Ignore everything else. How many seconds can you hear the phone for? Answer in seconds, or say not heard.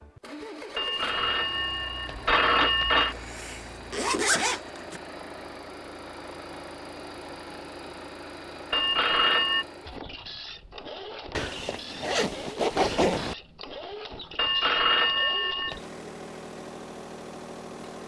5 s.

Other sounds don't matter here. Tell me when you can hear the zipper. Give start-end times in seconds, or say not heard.
3.1-5.0, 11.3-13.3.